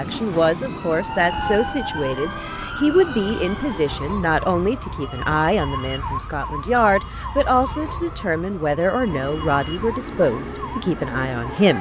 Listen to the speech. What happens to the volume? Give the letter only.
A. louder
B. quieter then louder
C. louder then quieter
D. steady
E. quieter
D.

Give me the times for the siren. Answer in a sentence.
You can hear the siren from 0.0 to 11.7 s.